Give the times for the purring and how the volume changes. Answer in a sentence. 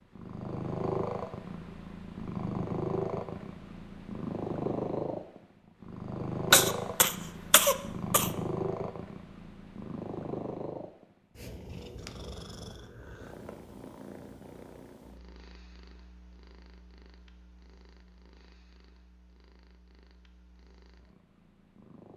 You can hear the purring from 0.1 to 22.1 s, getting quieter.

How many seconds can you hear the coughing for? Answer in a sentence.
The coughing can be heard for 2 seconds in total.